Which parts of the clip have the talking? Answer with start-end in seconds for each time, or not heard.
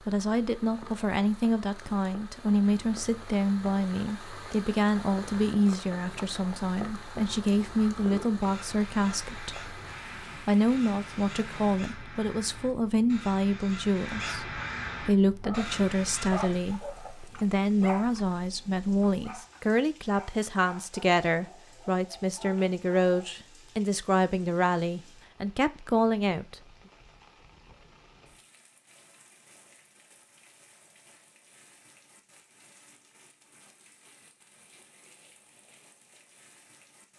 0.1-9.7, 10.4-26.6.